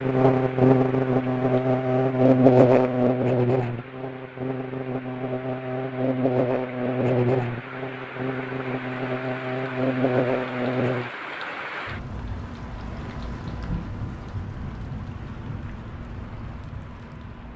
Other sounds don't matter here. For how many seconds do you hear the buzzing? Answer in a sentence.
You can hear the buzzing for 11 seconds altogether.